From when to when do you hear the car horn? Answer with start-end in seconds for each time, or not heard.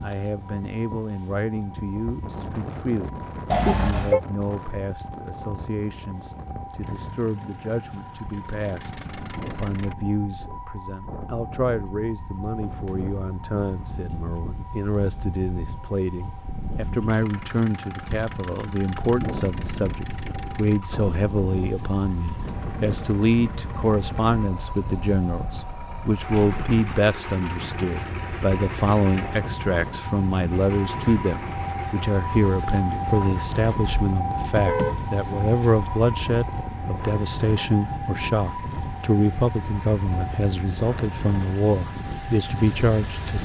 3.5-4.2, 33.8-35.5.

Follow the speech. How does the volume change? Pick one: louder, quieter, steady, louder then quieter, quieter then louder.
louder.